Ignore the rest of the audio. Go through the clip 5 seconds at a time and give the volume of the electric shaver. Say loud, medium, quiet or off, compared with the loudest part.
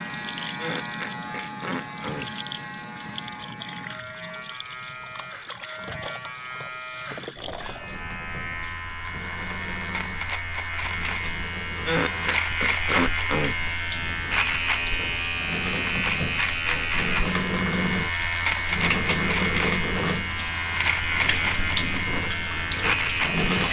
medium, medium, loud, loud, loud.